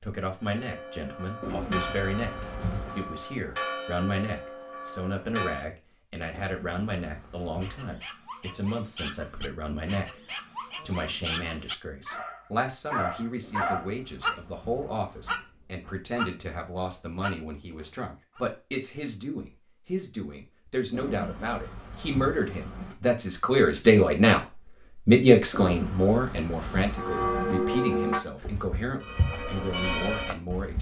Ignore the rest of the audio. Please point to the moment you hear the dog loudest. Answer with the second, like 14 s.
14 s.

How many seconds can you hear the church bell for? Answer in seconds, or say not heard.
9 s.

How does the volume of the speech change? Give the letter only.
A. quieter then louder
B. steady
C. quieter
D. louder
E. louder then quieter
E.